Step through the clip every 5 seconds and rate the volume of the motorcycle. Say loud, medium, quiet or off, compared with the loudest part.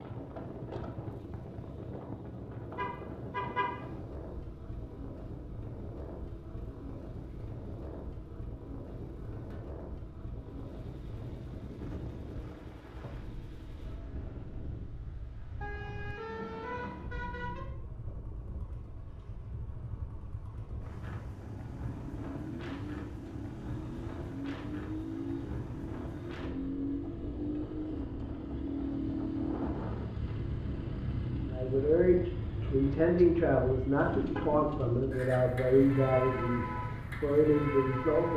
quiet, quiet, quiet, quiet, medium, loud, loud, loud.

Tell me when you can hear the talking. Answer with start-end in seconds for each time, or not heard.
31.4-38.3.